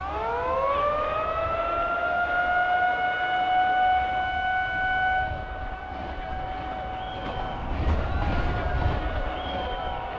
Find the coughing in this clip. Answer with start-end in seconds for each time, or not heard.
not heard.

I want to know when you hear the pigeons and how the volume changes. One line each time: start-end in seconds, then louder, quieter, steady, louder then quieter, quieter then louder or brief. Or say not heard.
not heard.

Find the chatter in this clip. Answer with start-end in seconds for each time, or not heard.
0.0-10.1.